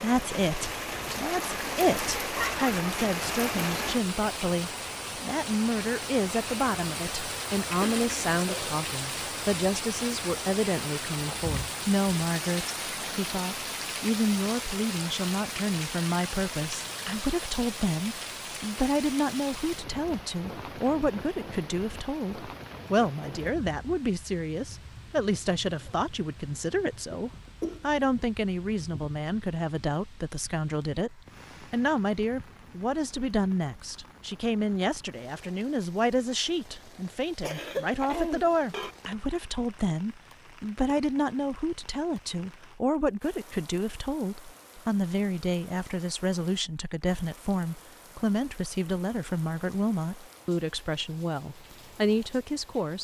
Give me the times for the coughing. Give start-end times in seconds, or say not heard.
7.8-8.8, 27.1-27.9, 37.4-39.0.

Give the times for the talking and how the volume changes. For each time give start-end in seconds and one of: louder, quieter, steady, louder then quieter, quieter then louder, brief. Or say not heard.
0.0-52.9 steady.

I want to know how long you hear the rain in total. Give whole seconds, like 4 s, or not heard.
53 s.